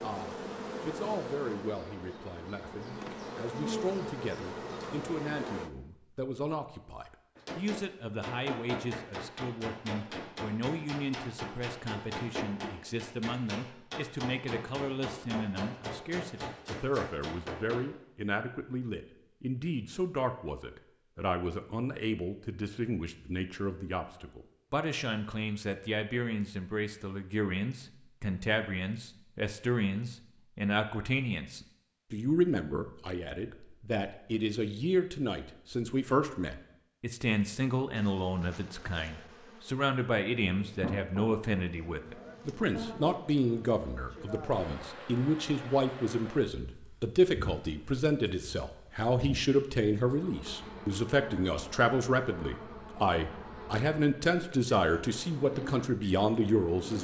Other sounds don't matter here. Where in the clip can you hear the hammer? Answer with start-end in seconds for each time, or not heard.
7.3-17.9.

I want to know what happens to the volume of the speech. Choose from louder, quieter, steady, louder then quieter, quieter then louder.
louder.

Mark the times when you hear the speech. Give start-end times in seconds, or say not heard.
0.0-56.9.